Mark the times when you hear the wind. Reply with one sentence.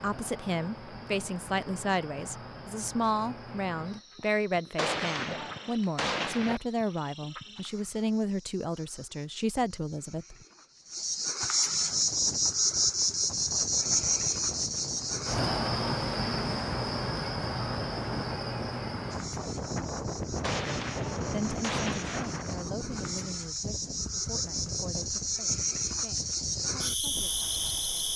The wind can be heard from 11.7 to 28.1 s.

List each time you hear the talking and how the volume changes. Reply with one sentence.
You can hear the talking from 0.0 to 10.3 s, at a steady volume; and from 21.2 to 28.1 s, getting quieter.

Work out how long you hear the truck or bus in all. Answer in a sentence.
You can't hear the truck or bus here.